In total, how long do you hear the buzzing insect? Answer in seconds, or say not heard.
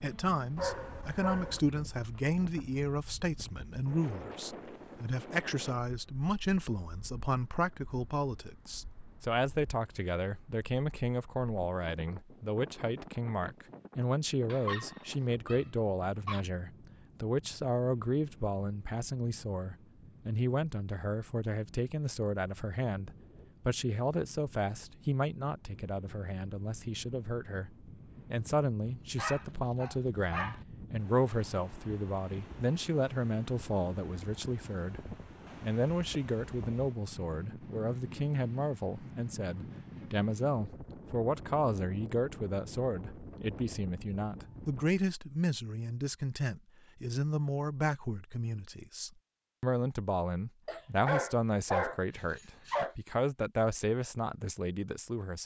not heard.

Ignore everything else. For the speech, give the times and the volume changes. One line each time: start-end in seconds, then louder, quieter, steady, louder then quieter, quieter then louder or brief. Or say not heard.
0.0-55.4 steady.